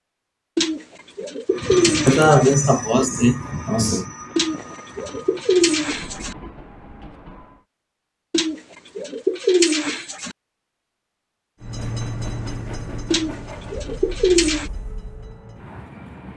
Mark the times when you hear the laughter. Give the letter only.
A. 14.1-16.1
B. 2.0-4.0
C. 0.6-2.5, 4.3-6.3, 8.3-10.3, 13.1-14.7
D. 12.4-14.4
B.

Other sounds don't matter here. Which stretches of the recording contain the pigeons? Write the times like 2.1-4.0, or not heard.
0.6-2.5, 4.3-6.3, 8.3-10.3, 13.1-14.7.